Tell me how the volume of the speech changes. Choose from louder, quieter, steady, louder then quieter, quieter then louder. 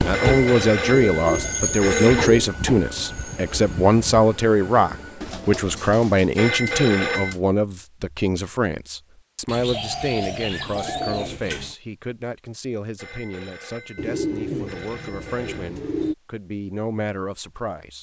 quieter.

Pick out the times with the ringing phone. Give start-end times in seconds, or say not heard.
0.1-2.3, 6.3-7.3, 12.9-15.7.